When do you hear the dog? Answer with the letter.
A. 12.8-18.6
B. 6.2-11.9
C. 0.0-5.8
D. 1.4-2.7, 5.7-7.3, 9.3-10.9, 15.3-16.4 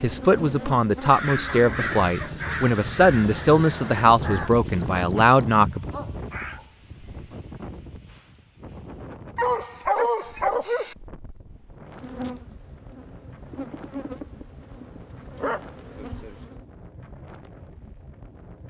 D.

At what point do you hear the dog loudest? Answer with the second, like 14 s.
10 s.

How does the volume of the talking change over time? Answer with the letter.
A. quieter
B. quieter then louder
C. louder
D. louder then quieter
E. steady
E.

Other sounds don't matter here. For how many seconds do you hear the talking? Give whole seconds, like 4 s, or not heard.
6 s.